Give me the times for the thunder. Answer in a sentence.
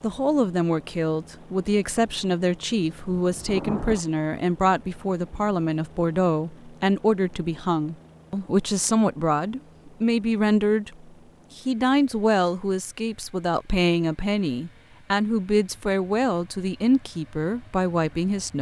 The thunder can be heard from 2.9 to 4.0 s.